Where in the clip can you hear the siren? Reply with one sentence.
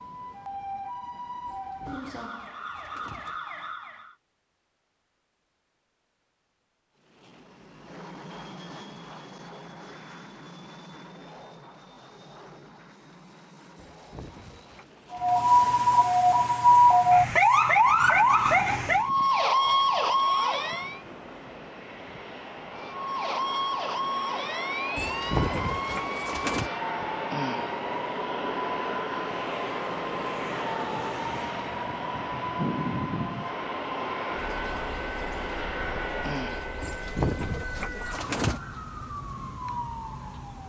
The siren can be heard from 0.0 to 4.2 s, from 15.1 to 21.0 s and from 22.8 to 40.6 s.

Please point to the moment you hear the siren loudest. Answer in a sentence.
The loudest moment of the siren is at 17 seconds.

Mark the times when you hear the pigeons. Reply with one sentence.
The pigeons can be heard from 1.4 to 3.4 s, from 13.9 to 15.5 s, from 24.9 to 26.7 s and from 36.8 to 38.6 s.